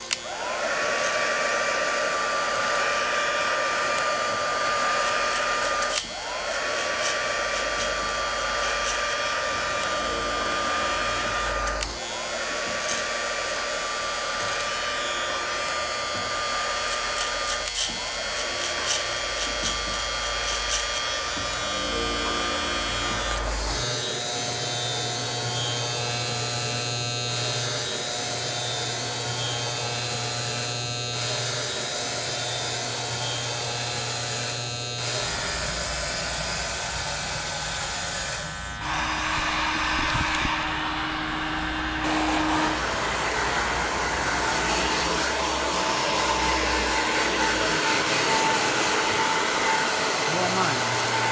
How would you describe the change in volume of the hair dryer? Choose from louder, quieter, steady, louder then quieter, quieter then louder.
quieter then louder.